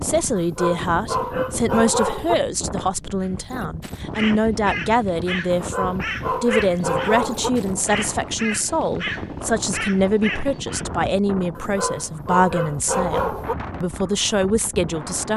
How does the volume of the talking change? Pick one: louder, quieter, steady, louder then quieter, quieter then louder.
steady.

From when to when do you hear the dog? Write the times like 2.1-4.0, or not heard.
0.3-2.4, 5.5-7.5, 11.6-13.6.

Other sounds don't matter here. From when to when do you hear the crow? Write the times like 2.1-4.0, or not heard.
3.2-10.8.